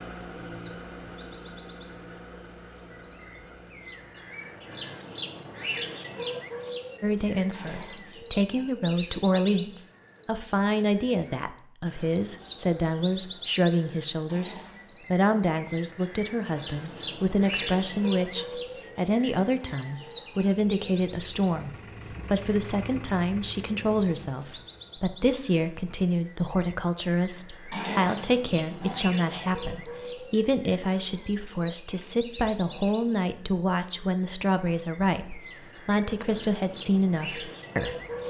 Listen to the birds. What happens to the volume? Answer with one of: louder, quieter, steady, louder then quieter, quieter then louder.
louder then quieter.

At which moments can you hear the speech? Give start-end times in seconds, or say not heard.
7.0-38.2.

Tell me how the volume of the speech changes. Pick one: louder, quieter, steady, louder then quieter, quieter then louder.
steady.